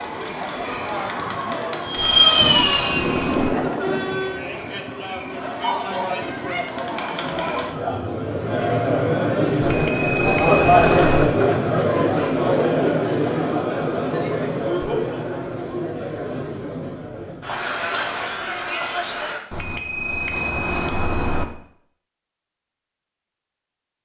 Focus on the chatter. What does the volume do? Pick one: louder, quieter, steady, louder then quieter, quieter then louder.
louder then quieter.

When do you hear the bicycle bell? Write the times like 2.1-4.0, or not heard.
1.9-3.5, 9.6-11.3, 19.5-21.4.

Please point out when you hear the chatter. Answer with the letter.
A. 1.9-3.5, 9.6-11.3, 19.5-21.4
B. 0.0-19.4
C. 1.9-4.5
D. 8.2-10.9
B.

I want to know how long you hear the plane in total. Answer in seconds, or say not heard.
3 s.